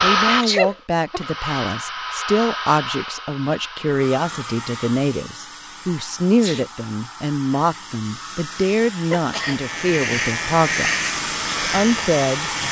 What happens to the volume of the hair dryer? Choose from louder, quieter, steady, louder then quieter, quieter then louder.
quieter then louder.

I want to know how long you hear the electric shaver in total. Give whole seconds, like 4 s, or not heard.
3 s.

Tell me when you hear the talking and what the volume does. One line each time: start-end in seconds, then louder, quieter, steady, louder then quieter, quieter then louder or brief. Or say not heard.
0.0-12.5 steady.